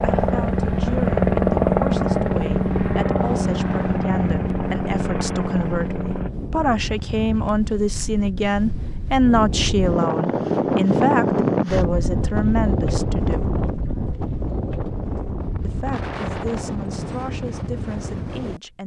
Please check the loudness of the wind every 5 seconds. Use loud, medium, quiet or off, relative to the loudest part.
quiet, medium, loud, medium.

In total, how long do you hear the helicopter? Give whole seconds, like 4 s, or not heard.
6 s.